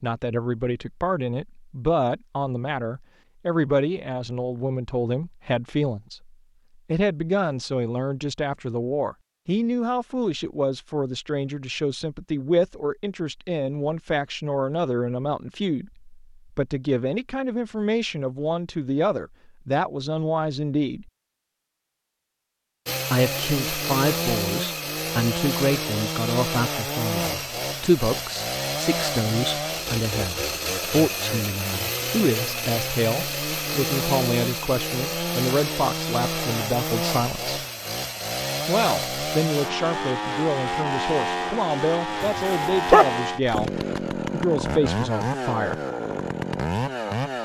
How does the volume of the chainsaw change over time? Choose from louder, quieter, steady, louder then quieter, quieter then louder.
steady.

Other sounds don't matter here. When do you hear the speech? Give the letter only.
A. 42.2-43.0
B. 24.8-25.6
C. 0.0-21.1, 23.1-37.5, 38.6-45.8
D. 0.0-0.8
C.